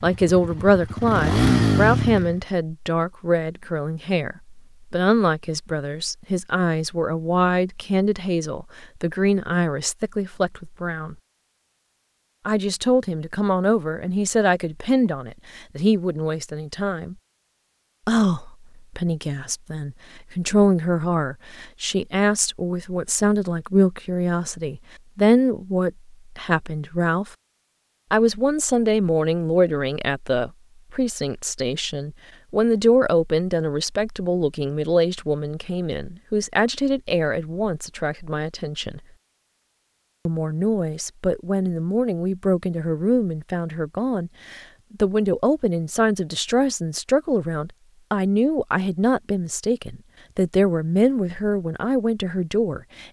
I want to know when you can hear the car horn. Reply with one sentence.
You can't hear the car horn here.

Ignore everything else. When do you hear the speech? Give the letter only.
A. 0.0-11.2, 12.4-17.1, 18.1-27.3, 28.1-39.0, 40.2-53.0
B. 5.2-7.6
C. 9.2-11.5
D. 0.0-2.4
A.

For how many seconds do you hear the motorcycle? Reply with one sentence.
You can hear the motorcycle for 2 seconds altogether.